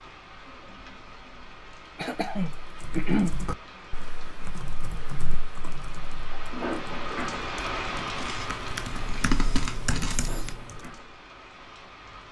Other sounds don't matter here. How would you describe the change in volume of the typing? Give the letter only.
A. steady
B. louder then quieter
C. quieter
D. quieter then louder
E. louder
D.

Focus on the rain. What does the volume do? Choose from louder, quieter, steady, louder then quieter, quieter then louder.
louder then quieter.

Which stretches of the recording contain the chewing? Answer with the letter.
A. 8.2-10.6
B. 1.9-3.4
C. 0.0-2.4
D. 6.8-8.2
A.